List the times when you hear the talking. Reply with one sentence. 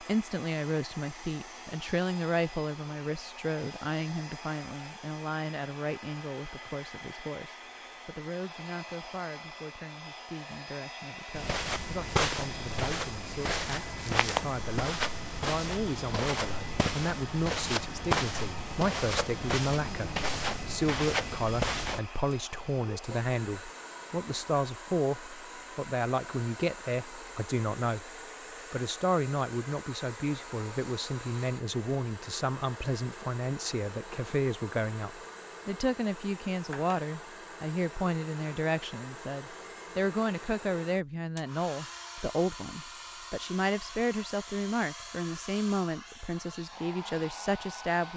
You can hear the talking from 0.0 to 28.1 s and from 28.7 to 48.1 s.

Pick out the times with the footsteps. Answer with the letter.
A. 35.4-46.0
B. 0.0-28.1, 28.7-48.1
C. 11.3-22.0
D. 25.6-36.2
C.